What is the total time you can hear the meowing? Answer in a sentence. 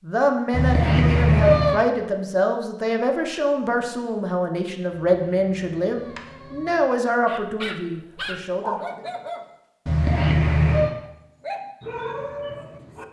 You can hear the meowing for 4 seconds altogether.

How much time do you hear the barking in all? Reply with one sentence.
You can hear the barking for 4 seconds altogether.